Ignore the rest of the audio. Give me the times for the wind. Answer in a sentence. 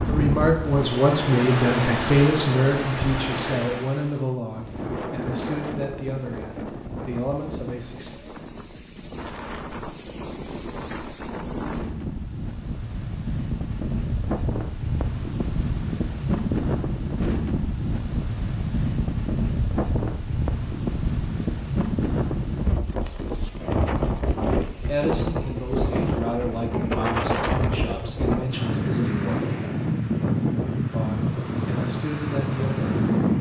The wind can be heard from 0.0 to 33.3 s.